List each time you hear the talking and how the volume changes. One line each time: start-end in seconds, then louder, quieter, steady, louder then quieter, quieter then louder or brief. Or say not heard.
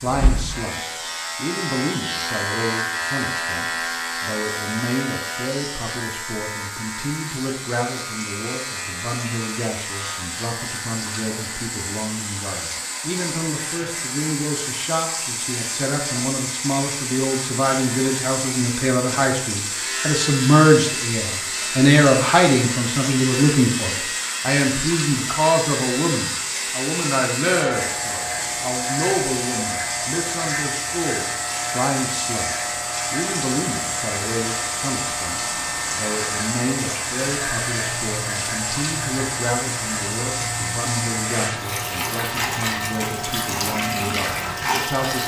0.0-45.2 louder then quieter.